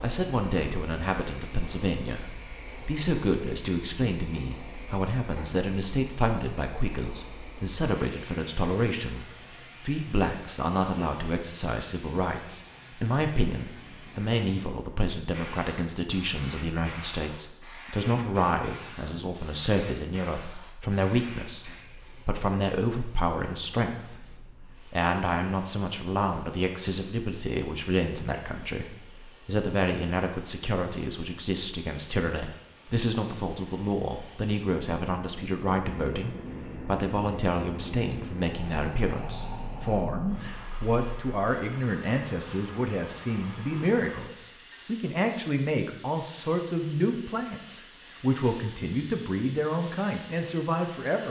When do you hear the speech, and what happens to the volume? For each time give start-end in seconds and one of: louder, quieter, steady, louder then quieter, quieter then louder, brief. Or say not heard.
0.0-51.2 steady.